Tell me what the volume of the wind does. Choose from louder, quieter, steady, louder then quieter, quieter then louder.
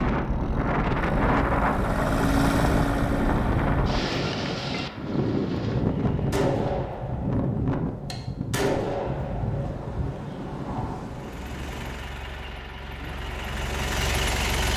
quieter.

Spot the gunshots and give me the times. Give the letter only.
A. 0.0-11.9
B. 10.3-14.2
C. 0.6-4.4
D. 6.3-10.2
D.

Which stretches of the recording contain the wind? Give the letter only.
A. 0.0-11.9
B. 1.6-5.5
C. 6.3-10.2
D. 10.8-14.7
A.